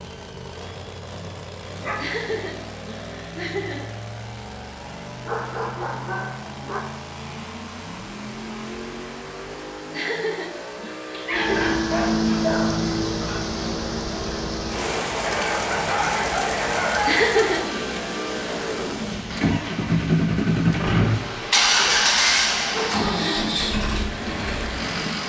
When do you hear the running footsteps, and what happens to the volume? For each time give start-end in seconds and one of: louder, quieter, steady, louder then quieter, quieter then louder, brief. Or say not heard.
not heard.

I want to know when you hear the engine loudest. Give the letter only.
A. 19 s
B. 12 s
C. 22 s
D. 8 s
C.